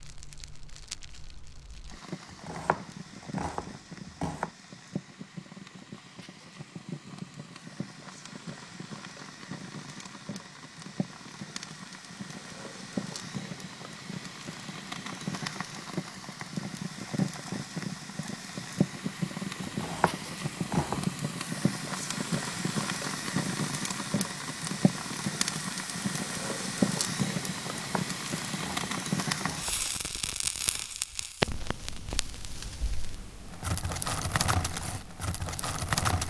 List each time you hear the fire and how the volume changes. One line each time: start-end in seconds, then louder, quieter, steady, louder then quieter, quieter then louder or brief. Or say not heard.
0.0-36.2 louder.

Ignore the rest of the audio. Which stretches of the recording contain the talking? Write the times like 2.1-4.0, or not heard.
not heard.